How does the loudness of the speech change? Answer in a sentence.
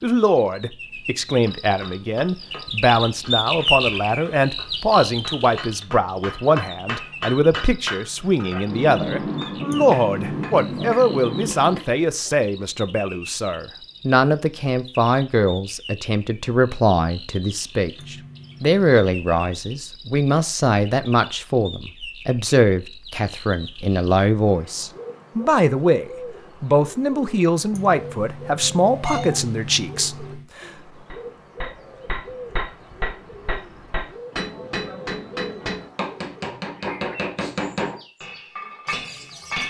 The loudness of the speech stays about the same.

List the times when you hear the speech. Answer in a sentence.
The speech can be heard from 0.0 to 30.7 s.